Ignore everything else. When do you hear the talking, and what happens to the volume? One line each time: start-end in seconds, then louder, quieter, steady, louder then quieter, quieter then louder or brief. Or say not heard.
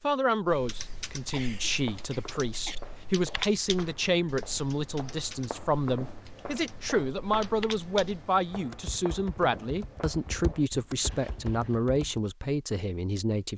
0.0-13.5 steady.